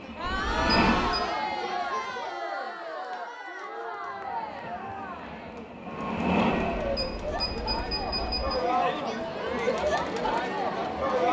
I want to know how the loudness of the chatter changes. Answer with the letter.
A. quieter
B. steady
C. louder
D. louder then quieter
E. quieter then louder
E.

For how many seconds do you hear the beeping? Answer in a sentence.
The beeping can be heard for 3 seconds in total.